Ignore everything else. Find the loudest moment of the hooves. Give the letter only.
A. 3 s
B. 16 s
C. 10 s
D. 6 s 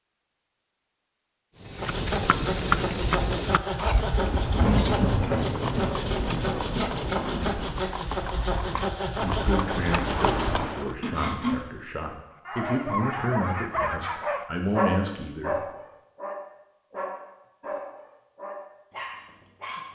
A.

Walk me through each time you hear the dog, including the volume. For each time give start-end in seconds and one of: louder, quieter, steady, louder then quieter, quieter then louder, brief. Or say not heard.
12.4-19.9 quieter.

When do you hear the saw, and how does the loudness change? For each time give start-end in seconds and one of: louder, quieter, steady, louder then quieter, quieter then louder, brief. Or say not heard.
1.8-11.6 steady.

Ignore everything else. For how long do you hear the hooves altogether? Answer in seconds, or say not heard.
9 s.